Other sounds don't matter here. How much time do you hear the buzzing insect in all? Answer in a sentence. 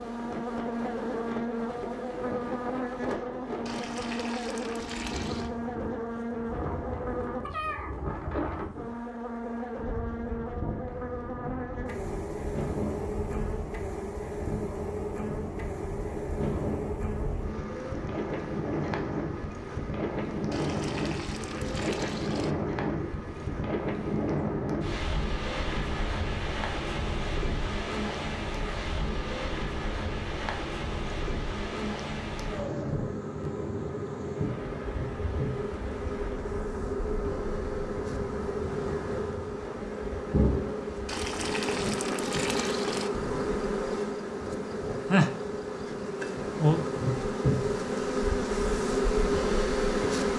The buzzing insect can be heard for 50 seconds in total.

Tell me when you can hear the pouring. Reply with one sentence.
The pouring can be heard from 3.6 to 5.5 s, from 20.5 to 22.6 s and from 41.0 to 43.1 s.